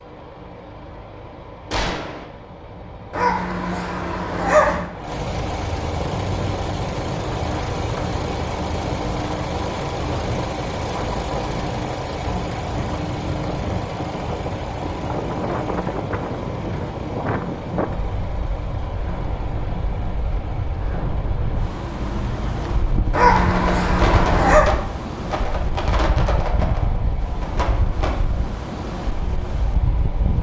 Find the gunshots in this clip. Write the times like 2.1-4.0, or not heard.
1.7-2.2, 23.3-28.1.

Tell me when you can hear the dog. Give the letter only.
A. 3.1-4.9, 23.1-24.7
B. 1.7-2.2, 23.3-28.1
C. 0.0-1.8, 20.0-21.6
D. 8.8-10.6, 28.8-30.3
A.